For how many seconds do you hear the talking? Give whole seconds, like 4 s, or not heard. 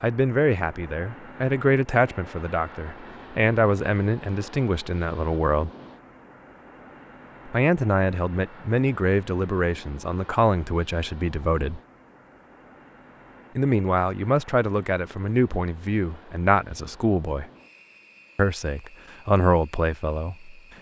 16 s.